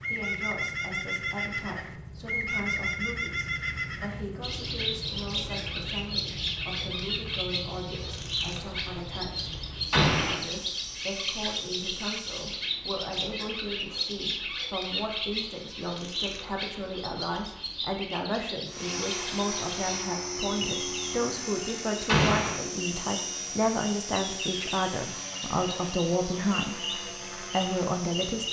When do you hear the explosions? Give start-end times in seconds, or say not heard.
9.9-10.4, 22.1-22.6.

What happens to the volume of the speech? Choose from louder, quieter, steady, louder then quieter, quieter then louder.
louder.